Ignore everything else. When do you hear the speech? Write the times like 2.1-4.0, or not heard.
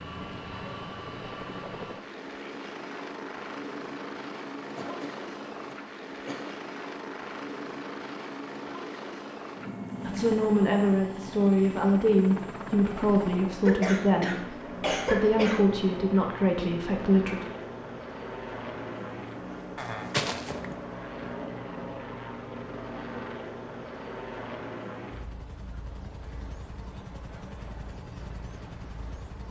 10.1-17.4.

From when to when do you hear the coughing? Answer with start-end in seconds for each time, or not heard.
4.8-6.5, 13.7-15.7, 19.8-20.8.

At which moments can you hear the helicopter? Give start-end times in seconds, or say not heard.
0.0-29.4.